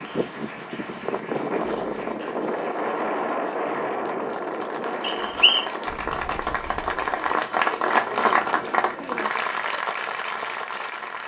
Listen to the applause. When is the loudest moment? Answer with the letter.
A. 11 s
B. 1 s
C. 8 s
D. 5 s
C.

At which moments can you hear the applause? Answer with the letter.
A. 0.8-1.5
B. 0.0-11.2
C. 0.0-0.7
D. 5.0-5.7
B.